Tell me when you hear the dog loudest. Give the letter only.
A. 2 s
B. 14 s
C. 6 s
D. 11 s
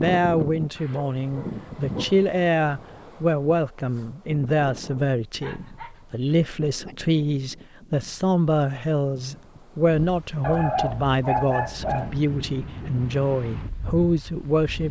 D.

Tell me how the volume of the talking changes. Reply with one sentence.
The volume of the talking stays about the same.